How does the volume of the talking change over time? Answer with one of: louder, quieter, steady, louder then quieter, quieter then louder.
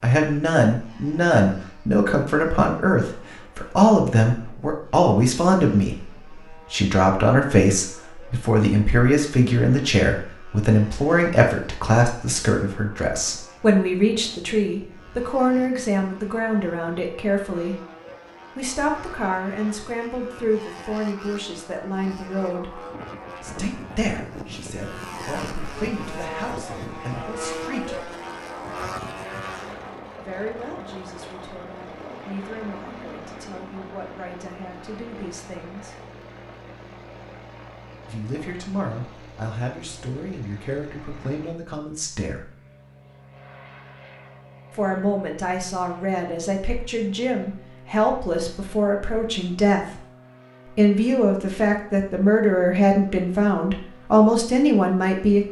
quieter then louder.